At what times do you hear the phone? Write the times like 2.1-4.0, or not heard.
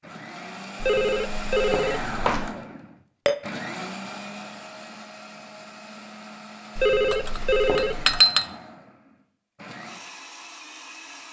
0.8-2.5, 6.8-8.2.